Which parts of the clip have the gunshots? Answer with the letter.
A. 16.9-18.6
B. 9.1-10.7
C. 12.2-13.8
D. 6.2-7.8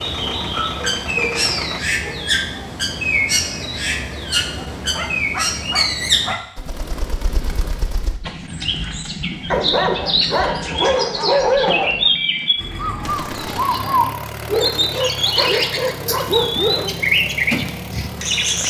C.